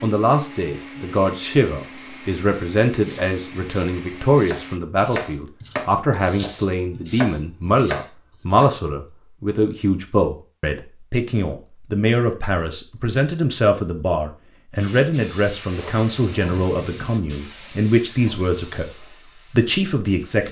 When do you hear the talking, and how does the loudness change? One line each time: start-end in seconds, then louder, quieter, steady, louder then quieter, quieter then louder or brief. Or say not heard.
0.0-18.9 steady
19.5-20.4 brief.